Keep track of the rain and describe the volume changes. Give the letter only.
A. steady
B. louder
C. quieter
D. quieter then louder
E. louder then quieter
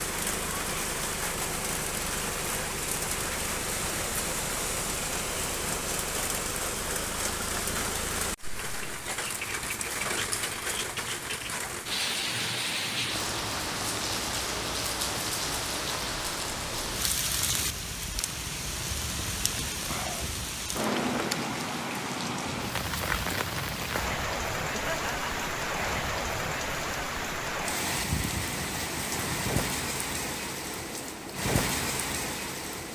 A.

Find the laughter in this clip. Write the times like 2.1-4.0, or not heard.
24.7-25.4.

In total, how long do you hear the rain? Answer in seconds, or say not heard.
33 s.